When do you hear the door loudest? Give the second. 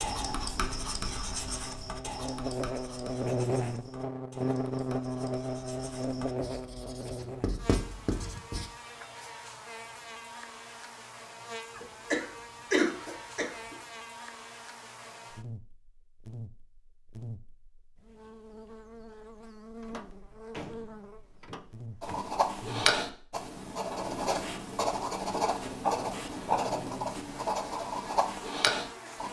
21 s.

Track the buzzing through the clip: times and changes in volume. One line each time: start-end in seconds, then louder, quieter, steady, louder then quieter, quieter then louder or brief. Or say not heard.
0.0-29.2 quieter.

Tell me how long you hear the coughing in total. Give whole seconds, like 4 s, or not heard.
2 s.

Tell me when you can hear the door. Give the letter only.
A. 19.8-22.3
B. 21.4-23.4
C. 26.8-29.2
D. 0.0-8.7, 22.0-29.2
A.